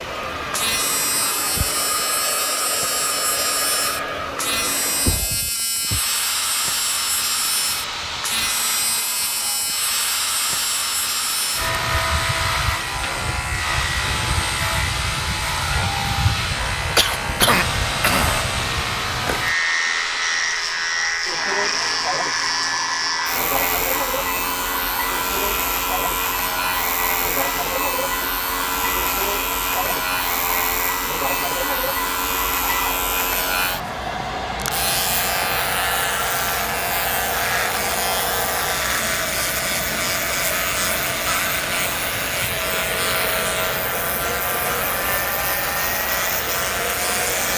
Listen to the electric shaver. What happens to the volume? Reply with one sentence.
The loudness of the electric shaver stays about the same.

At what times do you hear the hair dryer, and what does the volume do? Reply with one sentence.
You can hear the hair dryer from 0.0 to 47.5 s, at a steady volume.